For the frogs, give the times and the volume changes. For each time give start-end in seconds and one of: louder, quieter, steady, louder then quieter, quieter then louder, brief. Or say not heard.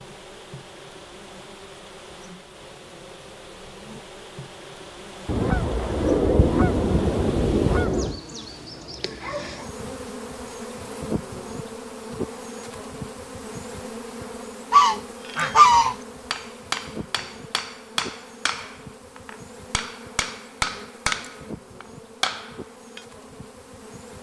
not heard.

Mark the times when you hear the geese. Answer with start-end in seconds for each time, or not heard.
5.2-8.2, 14.7-15.9.